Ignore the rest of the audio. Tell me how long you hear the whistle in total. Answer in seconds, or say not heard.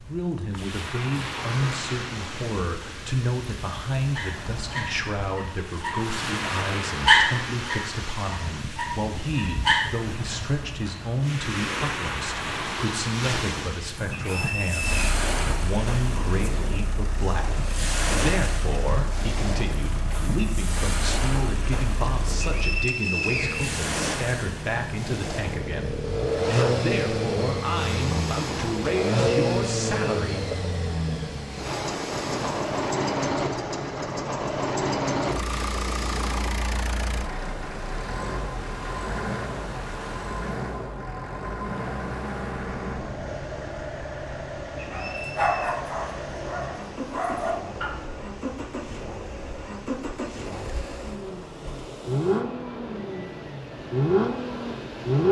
3 s.